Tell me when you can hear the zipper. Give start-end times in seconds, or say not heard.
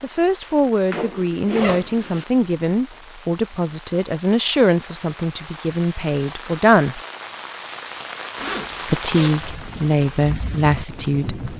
0.9-2.2, 8.3-9.9.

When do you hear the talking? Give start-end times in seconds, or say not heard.
0.0-7.0, 8.8-11.4.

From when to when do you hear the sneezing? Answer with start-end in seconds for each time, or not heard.
not heard.